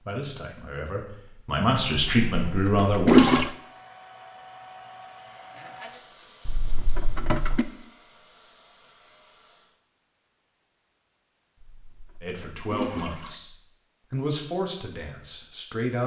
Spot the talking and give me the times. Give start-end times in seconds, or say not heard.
0.0-3.4, 12.2-16.0.